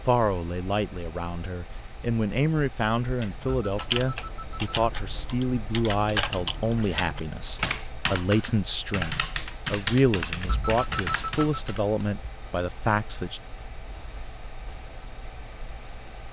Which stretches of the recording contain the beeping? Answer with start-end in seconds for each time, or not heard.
3.4-4.9, 10.4-11.6.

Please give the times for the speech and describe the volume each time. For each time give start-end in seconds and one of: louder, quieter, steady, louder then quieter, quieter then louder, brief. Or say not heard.
0.0-13.4 steady.